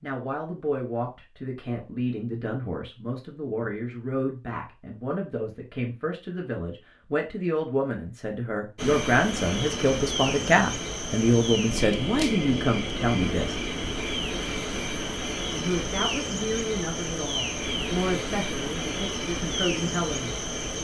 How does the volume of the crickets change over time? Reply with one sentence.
The volume of the crickets stays about the same.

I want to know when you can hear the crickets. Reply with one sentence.
The crickets can be heard from 8.8 to 20.7 s.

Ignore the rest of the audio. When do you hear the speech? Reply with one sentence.
The speech can be heard from 0.0 to 13.6 s and from 15.5 to 20.4 s.